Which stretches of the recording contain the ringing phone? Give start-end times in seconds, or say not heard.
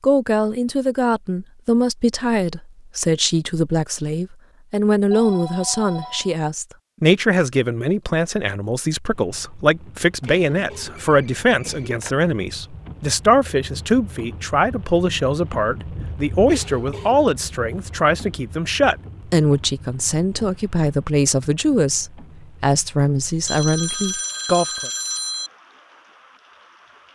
5.0-6.4, 10.2-12.2, 23.4-25.5.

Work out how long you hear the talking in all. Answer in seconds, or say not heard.
25 s.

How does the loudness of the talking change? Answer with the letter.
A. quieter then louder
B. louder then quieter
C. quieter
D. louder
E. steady
E.